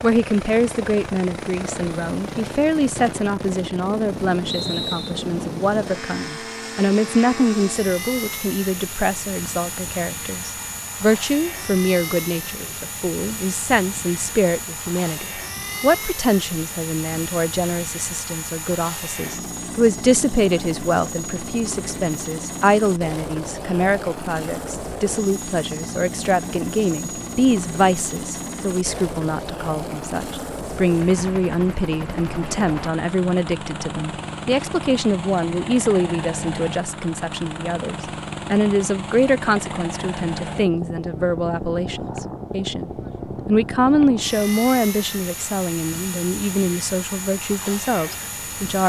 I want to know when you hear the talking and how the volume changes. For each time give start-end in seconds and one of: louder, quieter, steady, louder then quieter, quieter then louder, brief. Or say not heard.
0.0-48.8 steady.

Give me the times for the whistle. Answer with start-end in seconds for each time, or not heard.
4.5-5.2.